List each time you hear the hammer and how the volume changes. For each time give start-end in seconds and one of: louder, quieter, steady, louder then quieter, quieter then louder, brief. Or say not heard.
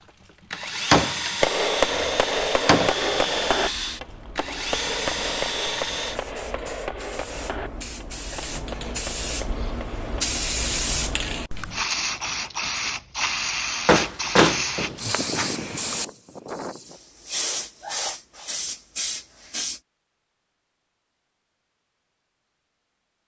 1.4-10.3 quieter.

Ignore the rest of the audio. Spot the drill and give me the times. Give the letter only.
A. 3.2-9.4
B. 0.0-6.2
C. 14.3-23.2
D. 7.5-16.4
B.